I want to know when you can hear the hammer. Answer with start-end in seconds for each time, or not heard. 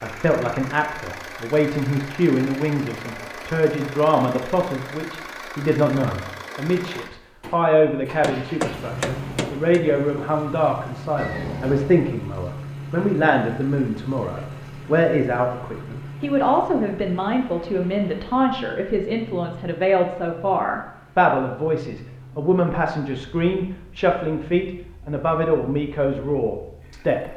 8.2-9.8.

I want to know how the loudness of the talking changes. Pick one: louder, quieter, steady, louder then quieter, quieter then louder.
steady.